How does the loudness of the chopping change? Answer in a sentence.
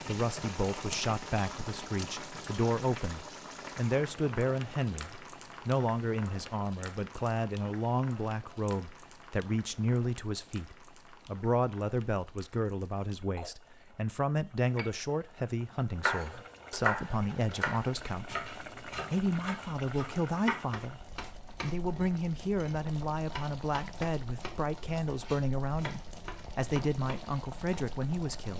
The volume of the chopping goes down.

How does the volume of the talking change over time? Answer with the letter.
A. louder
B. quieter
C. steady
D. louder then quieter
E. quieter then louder
C.